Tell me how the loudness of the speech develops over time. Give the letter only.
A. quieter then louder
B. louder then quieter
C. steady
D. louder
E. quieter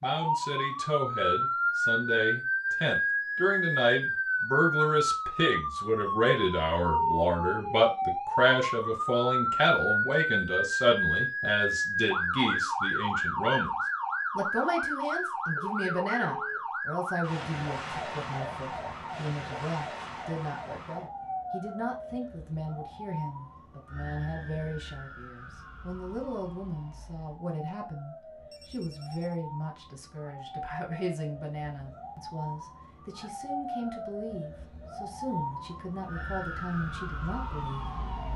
E.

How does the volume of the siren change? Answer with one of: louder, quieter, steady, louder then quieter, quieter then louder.
quieter then louder.